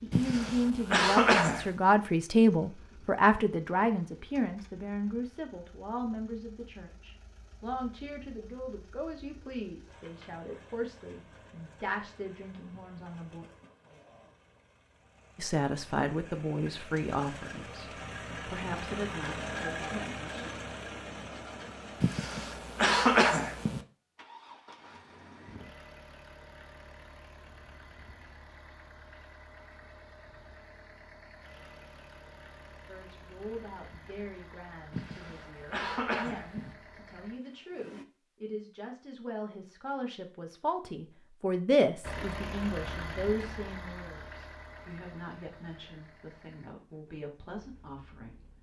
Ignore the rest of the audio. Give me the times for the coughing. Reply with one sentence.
You can hear the coughing from 0.1 to 1.8 s, from 22.0 to 23.8 s and from 34.9 to 36.8 s.